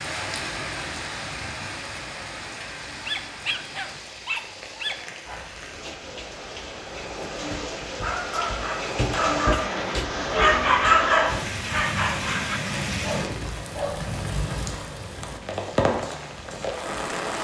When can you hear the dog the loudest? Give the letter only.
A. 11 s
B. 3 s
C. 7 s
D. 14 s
A.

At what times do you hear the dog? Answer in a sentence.
You can hear the dog from 2.9 to 14.1 s.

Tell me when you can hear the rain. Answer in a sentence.
You can hear the rain from 0.0 to 17.3 s.